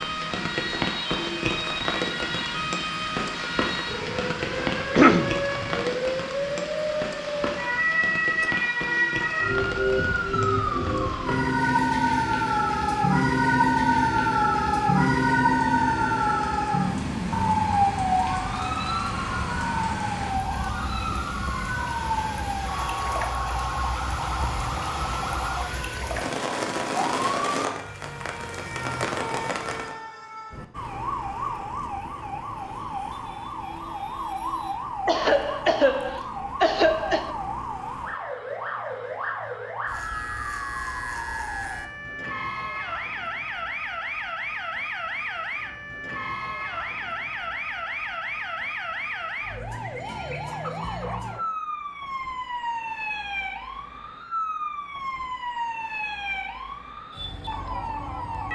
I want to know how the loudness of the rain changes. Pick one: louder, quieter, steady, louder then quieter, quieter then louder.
quieter then louder.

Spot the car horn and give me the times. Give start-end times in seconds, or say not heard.
not heard.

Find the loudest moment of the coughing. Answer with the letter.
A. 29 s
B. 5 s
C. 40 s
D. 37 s
B.